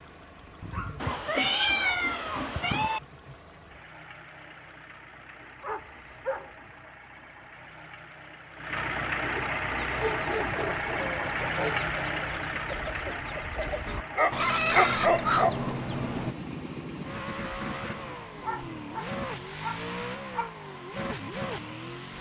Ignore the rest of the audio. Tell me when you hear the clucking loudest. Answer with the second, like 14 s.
15 s.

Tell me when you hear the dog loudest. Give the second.
15 s.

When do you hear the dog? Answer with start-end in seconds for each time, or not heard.
0.6-2.5, 5.6-6.5, 9.3-11.8, 14.2-15.6, 18.4-20.6.